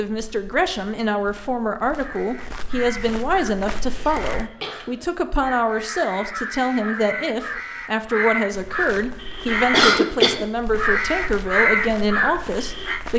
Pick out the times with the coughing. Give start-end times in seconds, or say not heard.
3.8-4.8, 9.7-10.4.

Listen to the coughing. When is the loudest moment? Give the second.
10 s.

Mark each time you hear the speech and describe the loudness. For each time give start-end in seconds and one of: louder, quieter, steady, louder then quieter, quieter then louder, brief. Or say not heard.
0.0-13.1 steady.